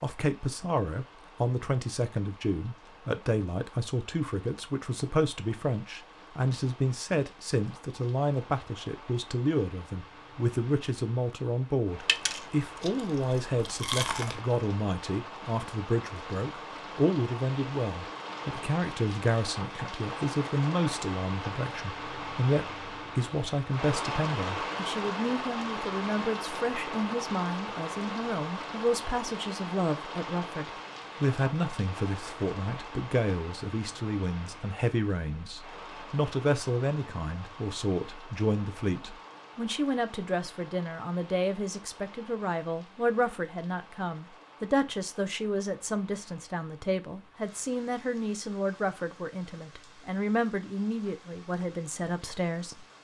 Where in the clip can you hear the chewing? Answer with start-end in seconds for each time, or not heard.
12.1-14.4.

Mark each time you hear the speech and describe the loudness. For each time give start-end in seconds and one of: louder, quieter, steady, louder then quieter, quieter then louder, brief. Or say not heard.
0.0-52.9 steady.